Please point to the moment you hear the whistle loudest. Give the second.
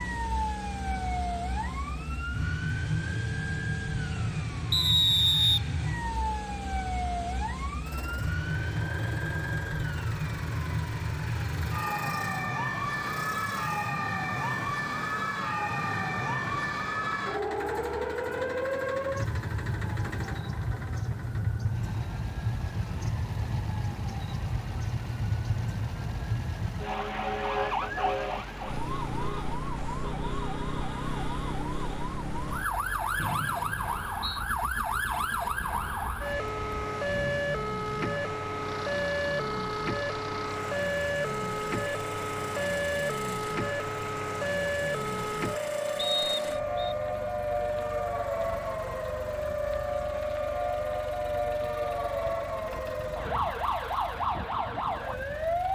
5 s.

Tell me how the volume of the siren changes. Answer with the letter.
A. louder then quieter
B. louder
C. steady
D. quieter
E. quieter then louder
C.